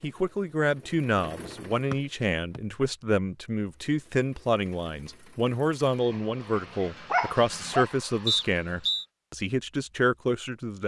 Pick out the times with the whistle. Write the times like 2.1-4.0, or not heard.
1.9-2.6, 8.2-9.1.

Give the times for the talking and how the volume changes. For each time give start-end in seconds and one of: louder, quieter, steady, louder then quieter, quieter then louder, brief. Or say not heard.
0.0-10.8 steady.